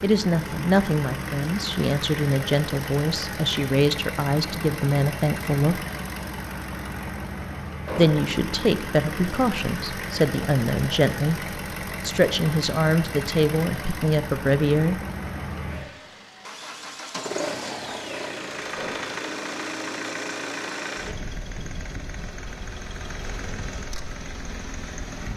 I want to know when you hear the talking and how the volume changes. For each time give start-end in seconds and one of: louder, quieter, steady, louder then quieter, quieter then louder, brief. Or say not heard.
0.0-5.8 steady
8.0-15.0 steady.